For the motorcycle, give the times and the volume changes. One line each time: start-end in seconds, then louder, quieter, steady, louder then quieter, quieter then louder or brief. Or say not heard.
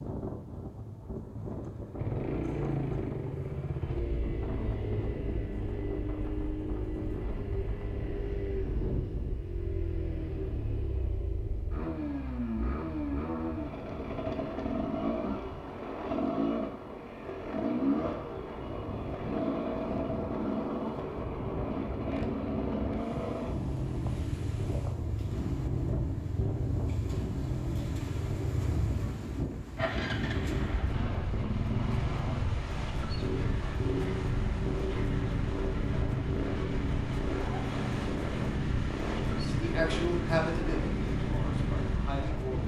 1.9-42.6 steady.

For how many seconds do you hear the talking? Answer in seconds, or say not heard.
3 s.